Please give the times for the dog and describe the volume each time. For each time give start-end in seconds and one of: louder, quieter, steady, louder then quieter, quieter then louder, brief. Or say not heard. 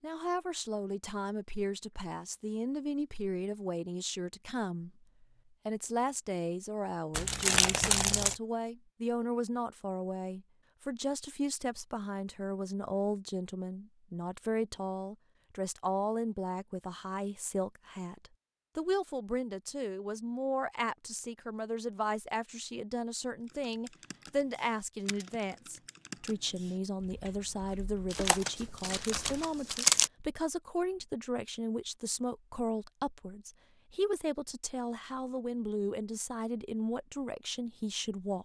not heard.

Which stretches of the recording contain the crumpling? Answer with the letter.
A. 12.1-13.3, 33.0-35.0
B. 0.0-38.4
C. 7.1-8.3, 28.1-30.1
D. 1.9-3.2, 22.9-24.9
C.